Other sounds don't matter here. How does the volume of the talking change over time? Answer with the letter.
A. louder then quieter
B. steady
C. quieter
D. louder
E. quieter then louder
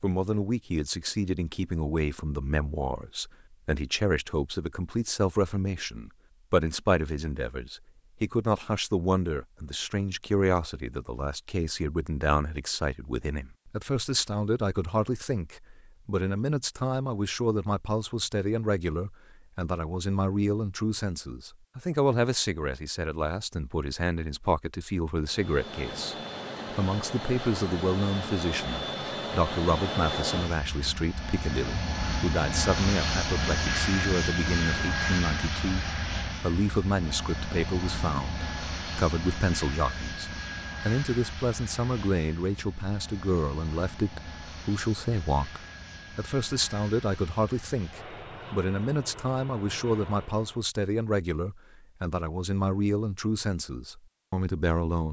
B.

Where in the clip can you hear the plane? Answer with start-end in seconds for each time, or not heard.
25.2-50.6.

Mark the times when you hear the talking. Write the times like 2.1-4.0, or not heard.
0.0-55.0.